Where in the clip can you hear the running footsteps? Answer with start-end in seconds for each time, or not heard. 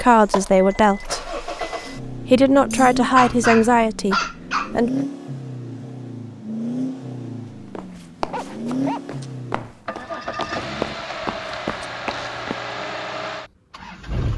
7.5-12.6.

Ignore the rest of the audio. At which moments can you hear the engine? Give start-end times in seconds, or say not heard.
0.0-14.3.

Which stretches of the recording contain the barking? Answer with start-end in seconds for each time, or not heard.
2.7-4.7, 8.3-9.2.